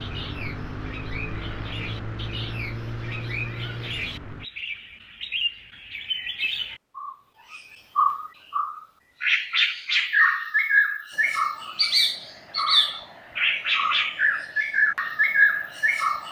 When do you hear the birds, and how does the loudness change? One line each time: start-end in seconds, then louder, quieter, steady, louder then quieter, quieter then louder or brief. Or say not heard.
0.0-16.2 louder.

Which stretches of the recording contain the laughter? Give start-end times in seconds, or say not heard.
not heard.